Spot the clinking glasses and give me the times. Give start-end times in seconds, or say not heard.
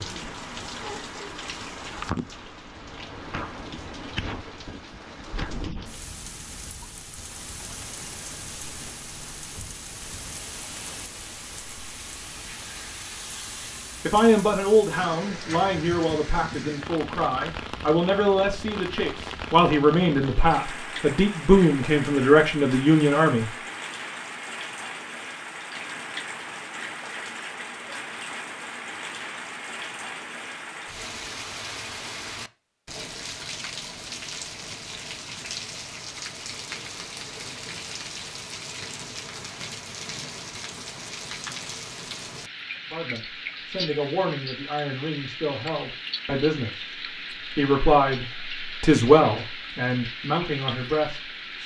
not heard.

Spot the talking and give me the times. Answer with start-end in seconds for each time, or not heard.
14.1-23.5, 42.9-46.9, 47.5-51.6.